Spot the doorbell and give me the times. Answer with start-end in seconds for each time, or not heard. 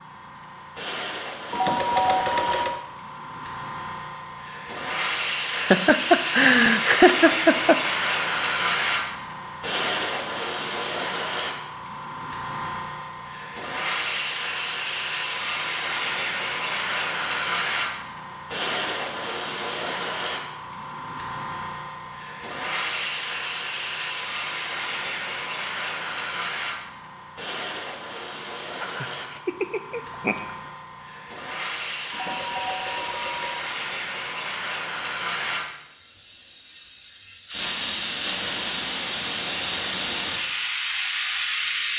1.5-2.8, 32.1-33.6.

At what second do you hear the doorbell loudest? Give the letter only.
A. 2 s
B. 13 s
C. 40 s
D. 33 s
A.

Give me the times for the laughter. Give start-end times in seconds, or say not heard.
5.5-7.8, 28.8-30.4.